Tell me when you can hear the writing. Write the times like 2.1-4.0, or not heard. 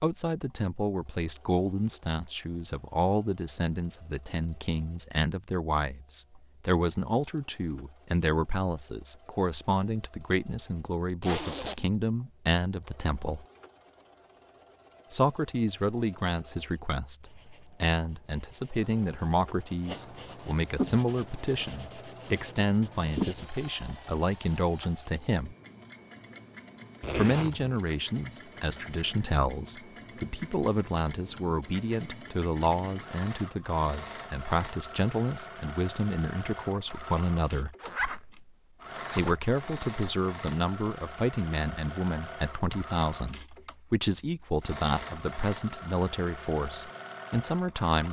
17.2-23.5.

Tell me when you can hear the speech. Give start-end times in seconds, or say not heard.
0.0-13.4, 15.1-25.6, 27.1-37.8, 39.1-48.0.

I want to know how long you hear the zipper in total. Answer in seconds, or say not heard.
3 s.